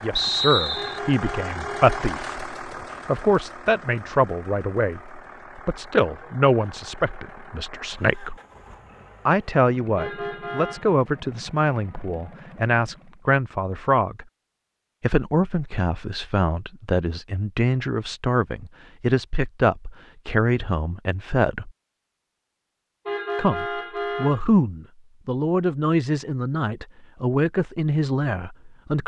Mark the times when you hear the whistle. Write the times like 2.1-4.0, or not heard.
0.1-1.0.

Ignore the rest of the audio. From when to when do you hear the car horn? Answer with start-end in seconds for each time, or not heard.
0.8-1.9, 9.9-10.9, 23.1-24.4.